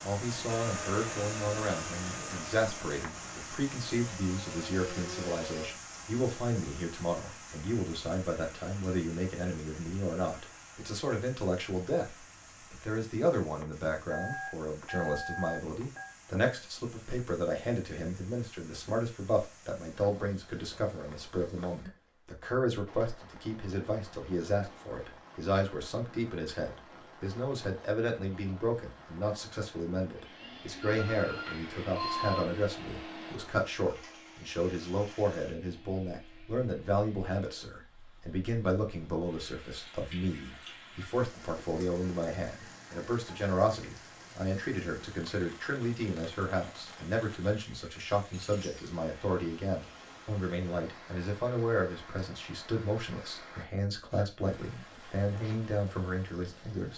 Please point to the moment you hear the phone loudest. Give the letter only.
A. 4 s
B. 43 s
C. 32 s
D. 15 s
C.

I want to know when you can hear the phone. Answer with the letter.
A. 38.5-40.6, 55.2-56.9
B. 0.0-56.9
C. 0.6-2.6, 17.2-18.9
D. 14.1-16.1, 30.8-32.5
D.